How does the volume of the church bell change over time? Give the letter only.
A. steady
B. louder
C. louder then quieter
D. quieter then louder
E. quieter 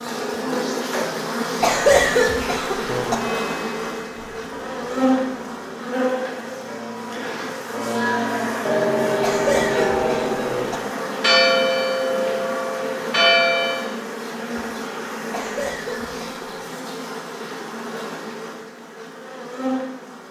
B.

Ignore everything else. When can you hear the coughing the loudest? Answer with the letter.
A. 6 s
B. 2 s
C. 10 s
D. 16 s
B.